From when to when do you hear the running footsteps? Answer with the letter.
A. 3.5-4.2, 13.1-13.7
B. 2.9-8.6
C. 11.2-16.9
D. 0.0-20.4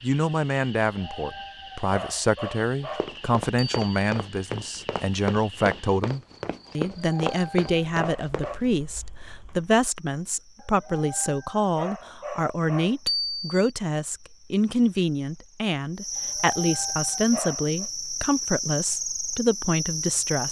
B.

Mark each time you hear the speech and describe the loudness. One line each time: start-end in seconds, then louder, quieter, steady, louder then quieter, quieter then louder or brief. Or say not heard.
0.0-20.4 steady.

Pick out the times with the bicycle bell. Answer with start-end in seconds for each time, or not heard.
3.5-4.2, 13.1-13.7.